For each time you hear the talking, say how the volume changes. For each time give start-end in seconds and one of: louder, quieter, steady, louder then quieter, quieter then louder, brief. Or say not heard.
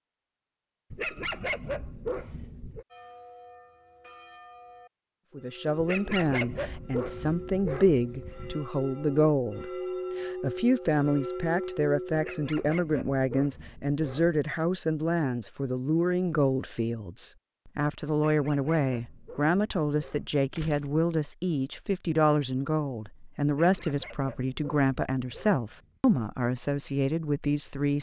5.3-27.9 steady.